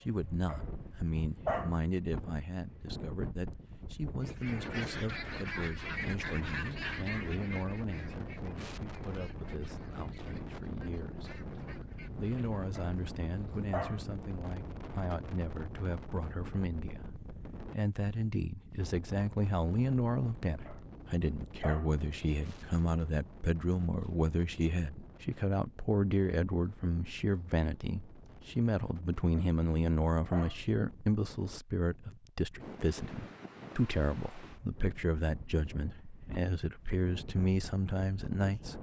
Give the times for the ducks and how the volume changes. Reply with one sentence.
You can hear the ducks from 4.2 to 12.7 s, getting quieter.